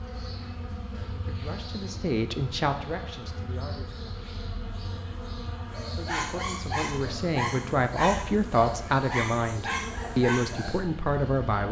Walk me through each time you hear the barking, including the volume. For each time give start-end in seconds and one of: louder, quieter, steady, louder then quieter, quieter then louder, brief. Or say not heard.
5.7-10.9 steady.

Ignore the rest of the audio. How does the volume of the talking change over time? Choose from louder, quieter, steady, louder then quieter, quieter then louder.
quieter then louder.